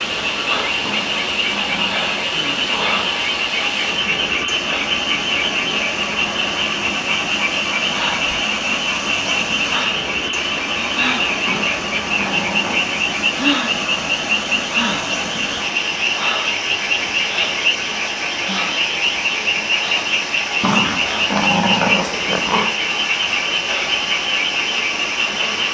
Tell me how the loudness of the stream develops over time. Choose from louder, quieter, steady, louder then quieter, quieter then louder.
steady.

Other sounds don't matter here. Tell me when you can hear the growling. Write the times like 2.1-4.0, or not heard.
0.8-3.1, 11.4-12.9, 20.6-22.8.